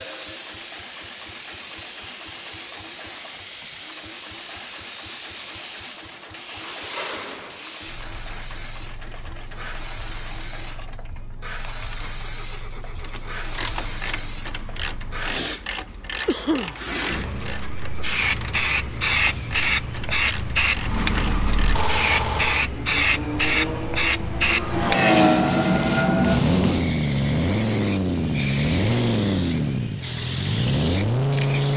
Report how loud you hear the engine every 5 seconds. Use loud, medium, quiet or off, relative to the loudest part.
quiet, quiet, quiet, quiet, medium, loud, loud.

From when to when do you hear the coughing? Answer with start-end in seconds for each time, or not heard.
16.2-16.8.